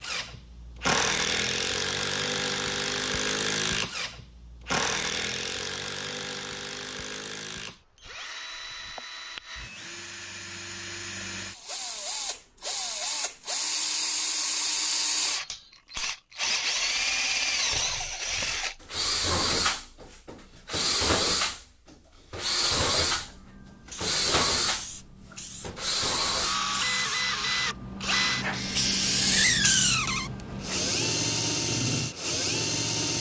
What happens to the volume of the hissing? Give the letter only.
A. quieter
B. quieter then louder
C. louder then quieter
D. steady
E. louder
E.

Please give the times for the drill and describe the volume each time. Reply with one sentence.
The drill can be heard from 0.0 to 33.1 s, getting quieter then louder.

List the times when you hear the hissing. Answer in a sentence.
You can hear the hissing from 23.1 to 30.9 s.